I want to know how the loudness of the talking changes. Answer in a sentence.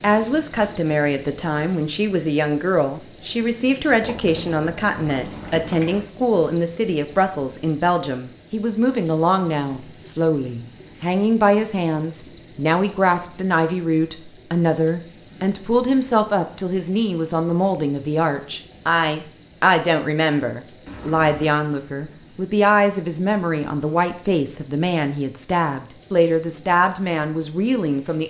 The loudness of the talking stays about the same.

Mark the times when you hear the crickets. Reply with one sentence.
The crickets can be heard from 0.0 to 28.2 s.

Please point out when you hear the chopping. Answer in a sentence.
The chopping can't be heard in this clip.